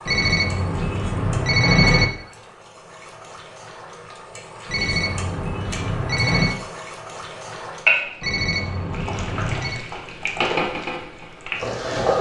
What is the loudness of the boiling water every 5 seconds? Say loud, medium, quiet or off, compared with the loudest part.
quiet, loud, loud.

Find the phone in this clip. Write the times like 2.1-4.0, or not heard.
0.1-2.0, 4.7-6.5, 8.2-9.8.